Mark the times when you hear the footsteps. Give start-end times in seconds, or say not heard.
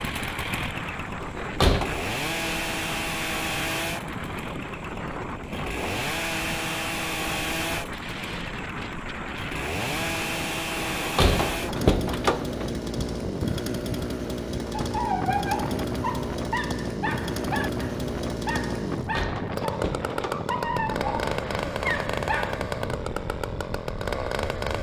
not heard.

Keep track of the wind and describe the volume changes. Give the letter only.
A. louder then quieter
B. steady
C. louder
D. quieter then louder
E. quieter
B.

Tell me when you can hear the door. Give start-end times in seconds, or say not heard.
1.2-1.9, 10.9-12.8, 18.9-20.4.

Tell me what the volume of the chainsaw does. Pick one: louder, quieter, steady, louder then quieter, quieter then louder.
steady.